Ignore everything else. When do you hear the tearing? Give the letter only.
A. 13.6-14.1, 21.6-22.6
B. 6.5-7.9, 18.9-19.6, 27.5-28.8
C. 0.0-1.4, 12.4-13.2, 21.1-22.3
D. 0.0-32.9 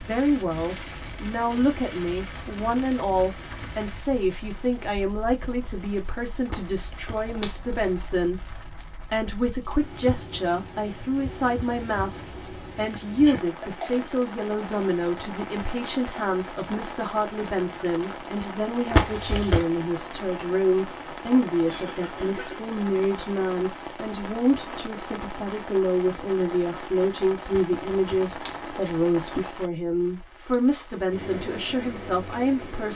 B.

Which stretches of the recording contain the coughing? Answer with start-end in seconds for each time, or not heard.
13.6-14.1, 21.6-22.6.